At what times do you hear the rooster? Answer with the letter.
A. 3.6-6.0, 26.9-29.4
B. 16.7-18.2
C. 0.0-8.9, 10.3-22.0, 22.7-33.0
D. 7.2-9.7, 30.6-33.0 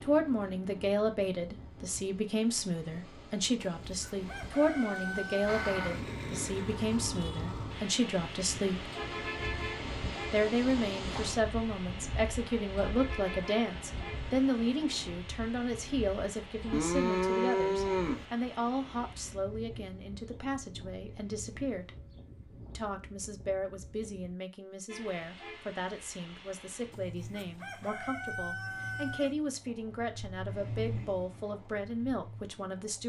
A.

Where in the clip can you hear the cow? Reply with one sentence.
The cow can be heard from 16.7 to 18.2 s.